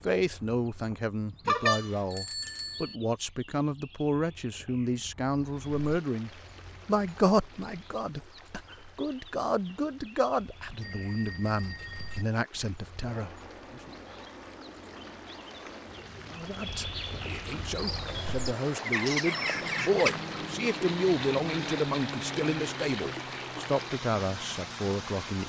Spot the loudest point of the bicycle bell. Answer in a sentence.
The loudest moment of the bicycle bell is at 2 seconds.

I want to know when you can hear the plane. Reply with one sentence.
You can hear the plane from 13.1 to 25.4 s.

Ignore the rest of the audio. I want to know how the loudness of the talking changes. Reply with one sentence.
The loudness of the talking stays about the same.